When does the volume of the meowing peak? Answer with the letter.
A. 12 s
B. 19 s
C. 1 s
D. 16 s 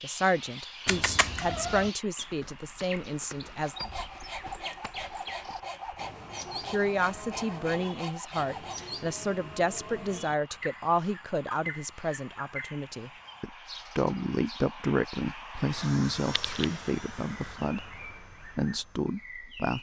C.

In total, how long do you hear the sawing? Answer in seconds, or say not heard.
5 s.